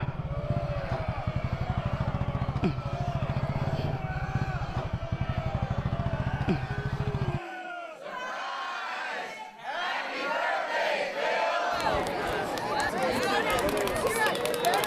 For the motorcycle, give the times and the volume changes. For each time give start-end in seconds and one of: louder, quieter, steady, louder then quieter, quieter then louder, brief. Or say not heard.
0.0-7.4 steady.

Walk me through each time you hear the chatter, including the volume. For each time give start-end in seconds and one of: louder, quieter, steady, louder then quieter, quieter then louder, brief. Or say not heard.
0.1-14.8 louder.